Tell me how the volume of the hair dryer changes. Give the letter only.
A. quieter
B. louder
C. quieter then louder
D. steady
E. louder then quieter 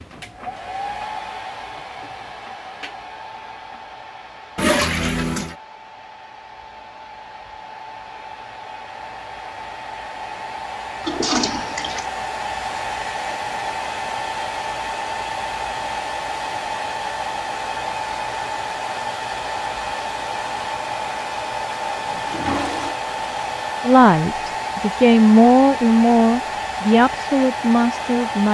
B.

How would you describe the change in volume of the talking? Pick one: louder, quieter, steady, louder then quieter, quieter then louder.
louder then quieter.